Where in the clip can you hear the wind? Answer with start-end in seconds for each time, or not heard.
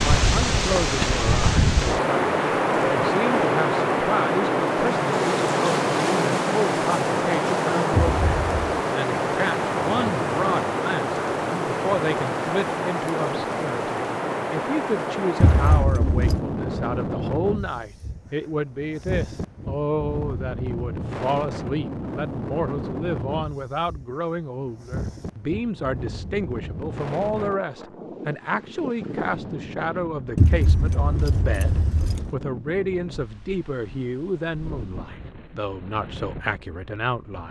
0.0-37.4.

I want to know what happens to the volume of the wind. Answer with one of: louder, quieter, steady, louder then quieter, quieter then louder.
quieter.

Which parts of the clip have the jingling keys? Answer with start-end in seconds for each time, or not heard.
7.9-8.6, 15.4-16.4, 30.4-32.4.